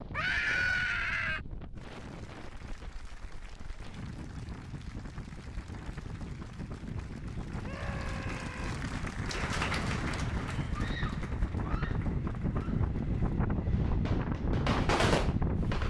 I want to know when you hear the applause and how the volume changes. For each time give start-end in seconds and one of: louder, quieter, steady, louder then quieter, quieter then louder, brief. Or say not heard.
1.8-13.4 louder then quieter.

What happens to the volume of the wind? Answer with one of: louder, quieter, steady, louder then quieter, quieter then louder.
louder.